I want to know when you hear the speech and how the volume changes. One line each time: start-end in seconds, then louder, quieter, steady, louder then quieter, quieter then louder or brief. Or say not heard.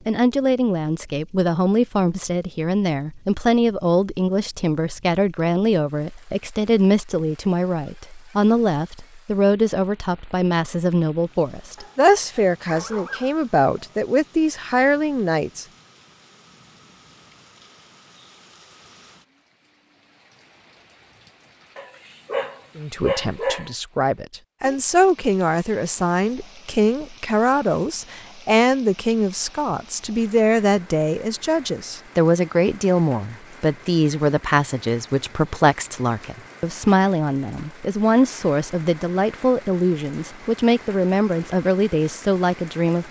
0.1-15.7 steady
22.8-43.0 steady.